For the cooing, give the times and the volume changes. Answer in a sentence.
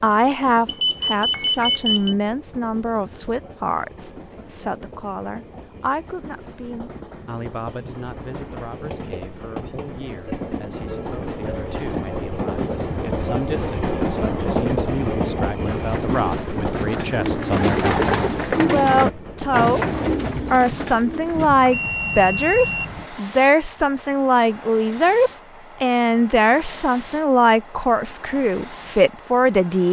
The cooing can be heard from 15.7 to 21.5 s, getting louder then quieter.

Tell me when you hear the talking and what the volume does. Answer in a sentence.
The talking can be heard from 0.0 to 29.8 s, getting quieter then louder.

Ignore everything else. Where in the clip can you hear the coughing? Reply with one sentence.
You can't hear the coughing here.